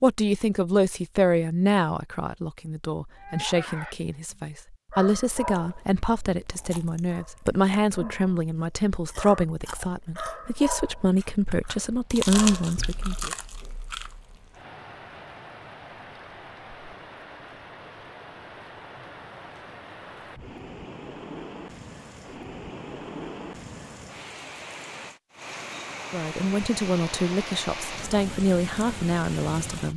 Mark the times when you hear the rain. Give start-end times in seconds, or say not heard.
11.8-29.9.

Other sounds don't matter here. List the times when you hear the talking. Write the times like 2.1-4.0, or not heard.
0.0-13.3, 26.1-29.9.